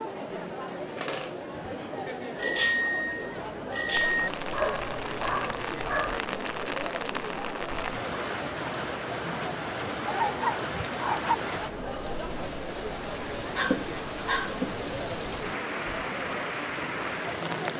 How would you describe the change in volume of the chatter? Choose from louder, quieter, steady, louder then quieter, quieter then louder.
steady.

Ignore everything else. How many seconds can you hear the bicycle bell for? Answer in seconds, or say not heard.
3 s.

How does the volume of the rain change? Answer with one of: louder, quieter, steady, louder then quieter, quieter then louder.
steady.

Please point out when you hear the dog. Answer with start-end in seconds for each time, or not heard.
0.9-2.8, 4.5-6.2, 10.1-11.3, 13.6-14.6.